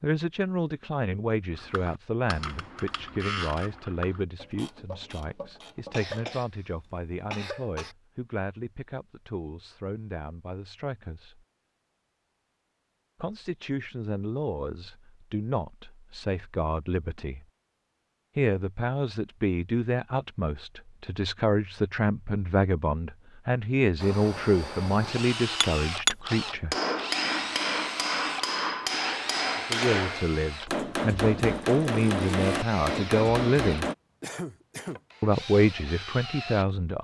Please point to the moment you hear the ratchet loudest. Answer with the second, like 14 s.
3 s.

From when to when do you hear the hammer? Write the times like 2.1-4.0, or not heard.
25.6-34.0.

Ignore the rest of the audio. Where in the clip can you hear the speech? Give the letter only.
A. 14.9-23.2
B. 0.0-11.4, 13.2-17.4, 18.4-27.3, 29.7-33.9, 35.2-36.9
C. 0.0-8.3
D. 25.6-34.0
B.